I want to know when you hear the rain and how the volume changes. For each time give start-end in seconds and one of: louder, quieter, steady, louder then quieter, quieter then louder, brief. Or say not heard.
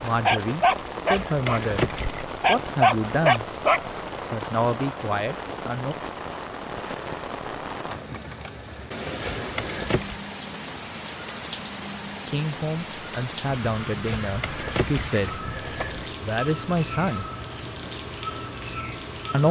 0.0-19.4 steady.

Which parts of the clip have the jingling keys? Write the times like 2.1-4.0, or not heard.
1.1-2.4, 9.2-10.2, 14.1-16.1.